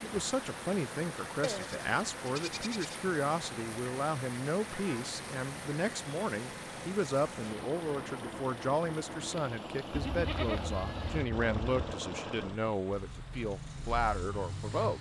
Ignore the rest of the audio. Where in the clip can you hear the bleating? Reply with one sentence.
You can hear the bleating from 1.4 to 3.0 s and from 9.9 to 11.9 s.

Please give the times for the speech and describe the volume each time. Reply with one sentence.
You can hear the speech from 0.0 to 14.9 s, at a steady volume.